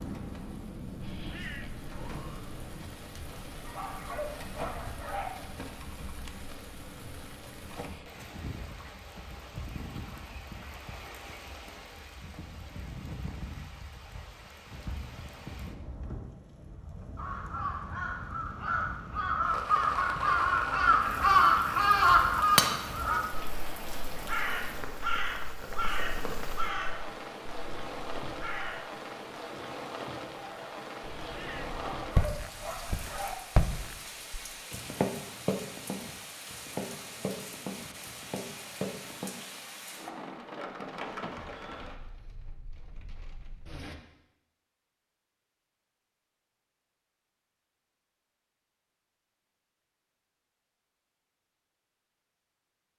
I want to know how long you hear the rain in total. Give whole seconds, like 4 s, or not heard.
44 s.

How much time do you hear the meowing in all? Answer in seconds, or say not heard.
3 s.